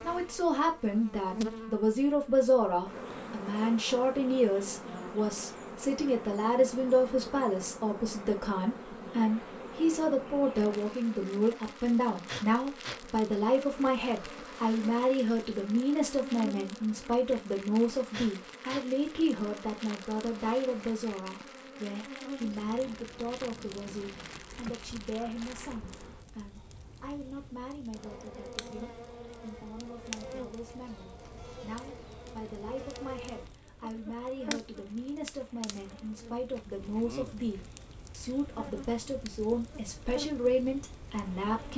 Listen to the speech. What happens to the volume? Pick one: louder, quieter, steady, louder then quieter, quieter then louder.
quieter then louder.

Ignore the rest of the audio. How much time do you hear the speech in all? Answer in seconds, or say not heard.
42 s.